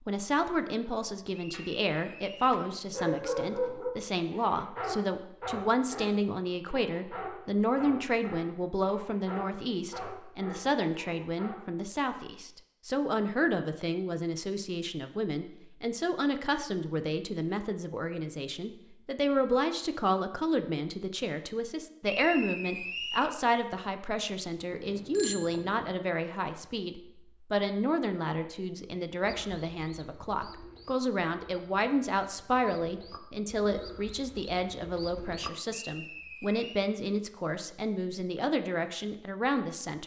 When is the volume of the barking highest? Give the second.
3 s.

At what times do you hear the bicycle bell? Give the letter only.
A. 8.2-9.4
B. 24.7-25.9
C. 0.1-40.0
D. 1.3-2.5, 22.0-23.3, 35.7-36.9
B.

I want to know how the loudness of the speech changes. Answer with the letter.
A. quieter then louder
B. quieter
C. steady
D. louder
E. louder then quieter
C.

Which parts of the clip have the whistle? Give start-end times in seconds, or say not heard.
1.3-2.5, 22.0-23.3, 35.7-36.9.